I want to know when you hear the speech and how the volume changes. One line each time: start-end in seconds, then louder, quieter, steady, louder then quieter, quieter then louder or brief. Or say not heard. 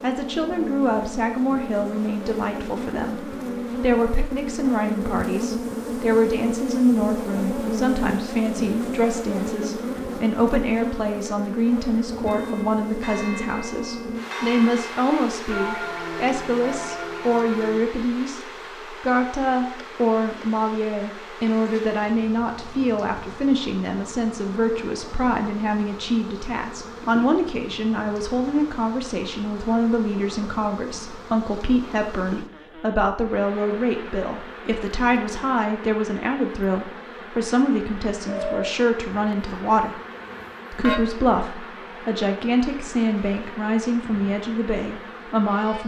0.0-40.0 steady
40.7-45.8 steady.